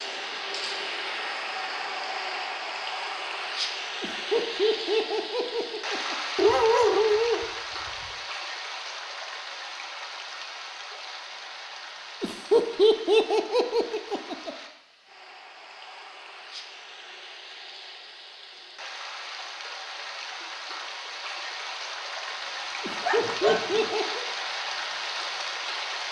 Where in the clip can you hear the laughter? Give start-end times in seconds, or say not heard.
4.0-6.2, 12.2-14.6, 22.8-24.2.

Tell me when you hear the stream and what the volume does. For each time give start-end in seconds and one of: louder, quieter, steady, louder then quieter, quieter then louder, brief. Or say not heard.
0.0-26.0 quieter then louder.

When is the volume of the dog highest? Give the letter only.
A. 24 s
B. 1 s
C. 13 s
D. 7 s
D.